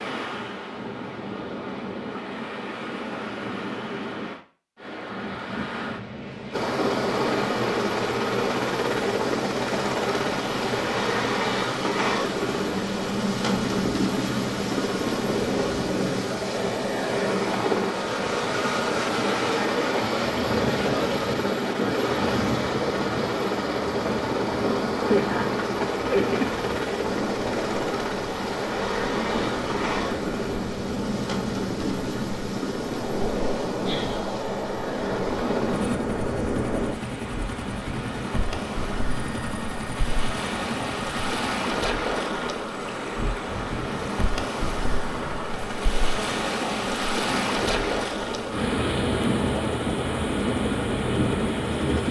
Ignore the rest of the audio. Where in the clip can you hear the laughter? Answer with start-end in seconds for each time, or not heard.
24.9-26.5.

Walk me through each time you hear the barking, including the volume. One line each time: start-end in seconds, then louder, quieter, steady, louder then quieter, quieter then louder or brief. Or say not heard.
not heard.